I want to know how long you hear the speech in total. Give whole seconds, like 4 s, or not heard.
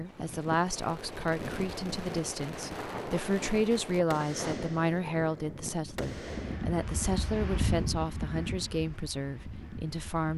10 s.